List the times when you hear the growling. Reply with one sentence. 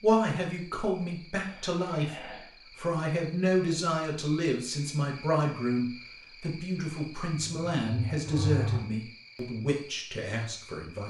The growling can be heard from 1.4 to 2.5 s and from 7.4 to 8.8 s.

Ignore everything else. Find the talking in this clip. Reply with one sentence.
You can hear the talking from 0.0 to 11.0 s.